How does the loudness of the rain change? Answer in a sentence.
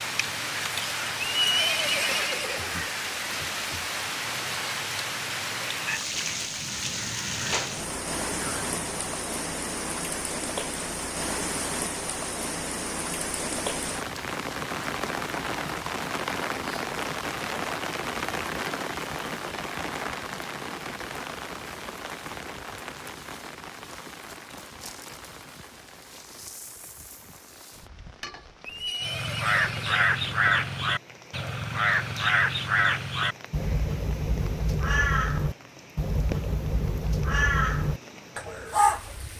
The loudness of the rain goes down.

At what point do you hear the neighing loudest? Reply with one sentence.
The loudest moment of the neighing is at 2 seconds.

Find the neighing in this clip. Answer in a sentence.
The neighing can be heard from 1.1 to 2.9 s and from 28.6 to 30.2 s.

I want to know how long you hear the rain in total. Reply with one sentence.
You can hear the rain for 39 seconds altogether.